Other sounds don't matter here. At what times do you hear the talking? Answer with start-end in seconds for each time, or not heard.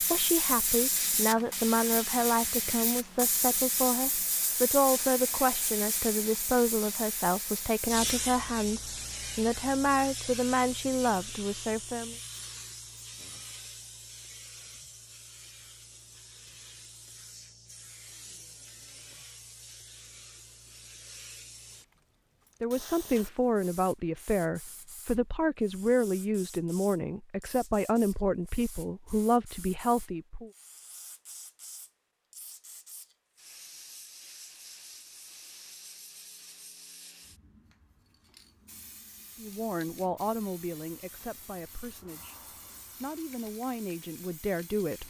0.0-12.2, 22.6-30.5, 39.4-45.0.